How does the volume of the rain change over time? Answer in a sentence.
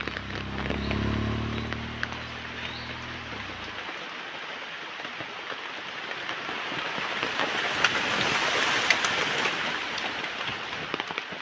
The loudness of the rain goes up.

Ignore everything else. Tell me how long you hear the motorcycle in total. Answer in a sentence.
You can hear the motorcycle for 4 seconds altogether.